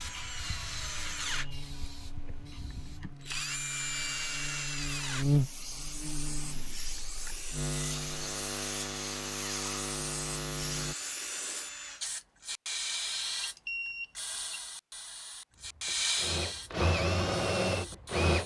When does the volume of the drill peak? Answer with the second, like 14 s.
17 s.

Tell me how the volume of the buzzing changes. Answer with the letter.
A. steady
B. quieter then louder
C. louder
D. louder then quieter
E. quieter
D.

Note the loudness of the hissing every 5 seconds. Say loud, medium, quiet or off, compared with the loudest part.
medium, medium, loud, loud.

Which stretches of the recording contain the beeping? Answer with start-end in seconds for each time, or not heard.
13.4-14.6.